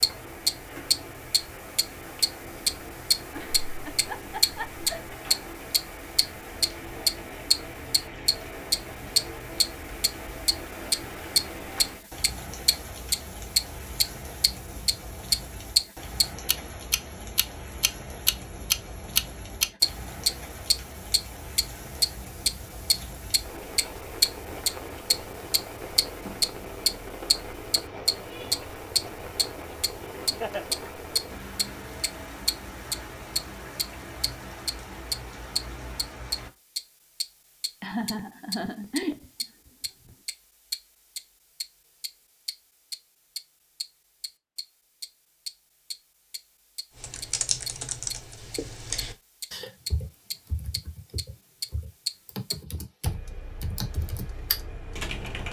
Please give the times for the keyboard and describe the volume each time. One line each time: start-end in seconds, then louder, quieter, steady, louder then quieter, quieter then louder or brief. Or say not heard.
47.0-55.4 quieter then louder.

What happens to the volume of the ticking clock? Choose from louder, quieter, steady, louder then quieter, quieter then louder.
quieter.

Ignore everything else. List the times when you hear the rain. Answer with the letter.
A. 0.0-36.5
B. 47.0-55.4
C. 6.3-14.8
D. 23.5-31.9
A.